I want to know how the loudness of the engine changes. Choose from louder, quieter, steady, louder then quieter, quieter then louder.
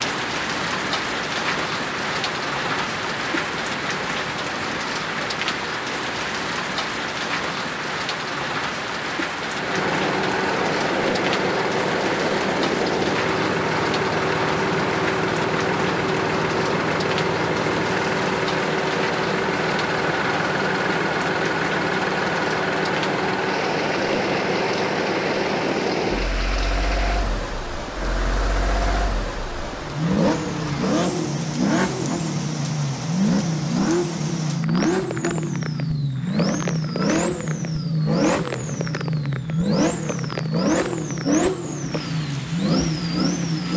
louder.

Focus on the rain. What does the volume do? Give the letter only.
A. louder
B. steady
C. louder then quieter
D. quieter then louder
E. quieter
E.